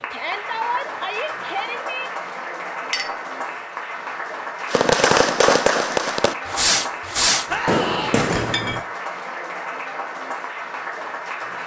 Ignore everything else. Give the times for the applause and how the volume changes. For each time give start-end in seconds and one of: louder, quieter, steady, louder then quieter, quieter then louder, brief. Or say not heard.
0.0-11.6 steady.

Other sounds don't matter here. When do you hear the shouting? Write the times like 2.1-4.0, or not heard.
0.1-2.1, 7.5-8.2.